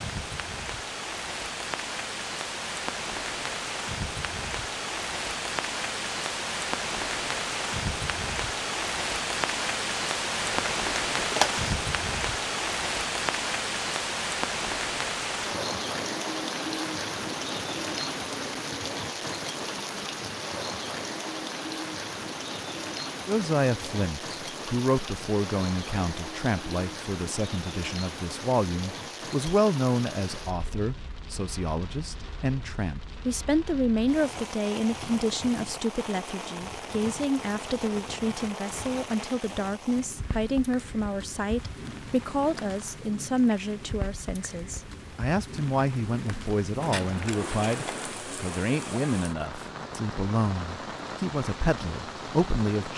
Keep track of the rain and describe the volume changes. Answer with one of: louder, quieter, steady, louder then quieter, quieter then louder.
quieter.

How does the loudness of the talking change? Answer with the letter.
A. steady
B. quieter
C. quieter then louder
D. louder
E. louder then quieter
A.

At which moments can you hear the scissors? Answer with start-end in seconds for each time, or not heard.
10.4-11.7, 46.8-48.2.